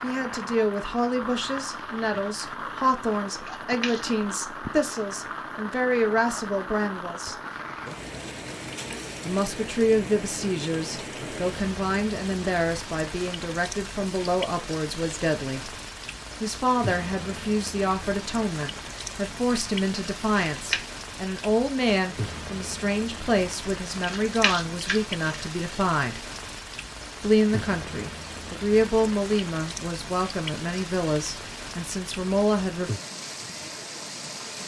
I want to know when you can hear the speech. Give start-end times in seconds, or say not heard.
0.0-7.3, 9.2-15.7, 16.4-26.2, 27.2-32.9.